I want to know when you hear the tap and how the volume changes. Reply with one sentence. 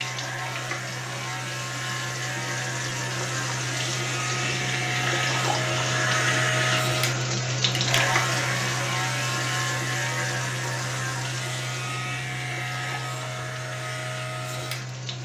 You can hear the tap from 0.0 to 15.1 s, getting louder then quieter.